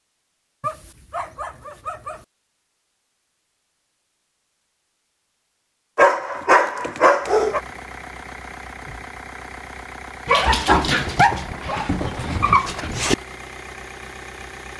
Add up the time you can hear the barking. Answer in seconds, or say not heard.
6 s.